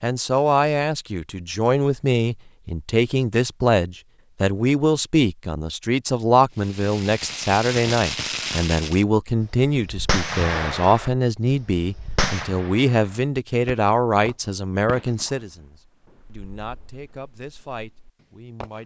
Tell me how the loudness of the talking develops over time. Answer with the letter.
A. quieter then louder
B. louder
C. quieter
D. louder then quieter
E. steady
C.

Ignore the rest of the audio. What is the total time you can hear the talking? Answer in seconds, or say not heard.
19 s.